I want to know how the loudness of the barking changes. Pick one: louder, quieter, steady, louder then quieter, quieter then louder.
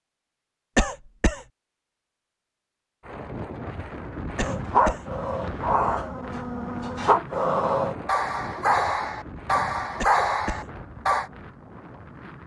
steady.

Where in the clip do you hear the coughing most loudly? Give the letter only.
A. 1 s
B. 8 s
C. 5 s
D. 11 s
A.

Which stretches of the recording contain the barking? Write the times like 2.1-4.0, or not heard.
4.4-11.3.